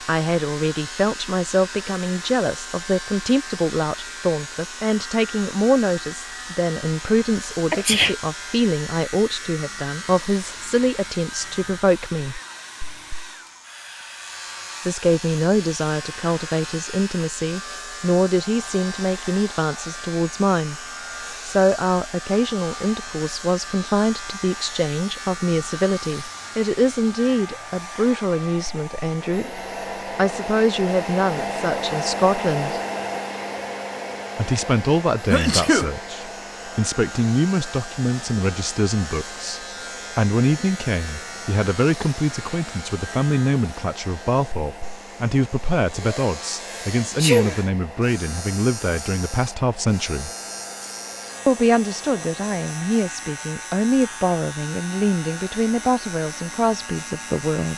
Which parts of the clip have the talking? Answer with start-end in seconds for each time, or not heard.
0.1-12.4, 14.8-20.8, 21.4-32.8, 34.4-50.3, 51.5-57.7.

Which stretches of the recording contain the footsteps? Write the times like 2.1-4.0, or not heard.
not heard.